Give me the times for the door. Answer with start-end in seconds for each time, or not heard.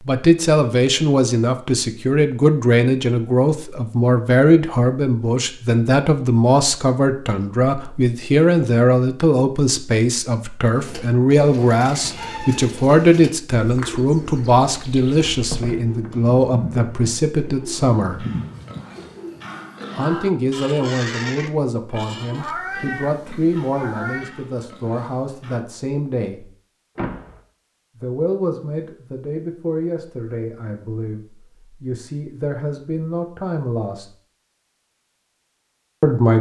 15.3-16.1, 26.9-27.4.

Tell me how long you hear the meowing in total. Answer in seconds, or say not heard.
2 s.